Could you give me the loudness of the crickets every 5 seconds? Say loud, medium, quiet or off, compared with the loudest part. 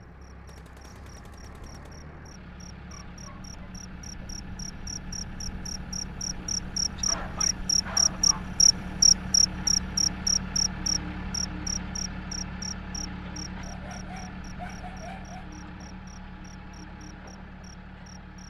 quiet, loud, medium, quiet.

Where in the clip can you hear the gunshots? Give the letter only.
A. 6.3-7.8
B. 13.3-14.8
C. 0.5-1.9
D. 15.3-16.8
C.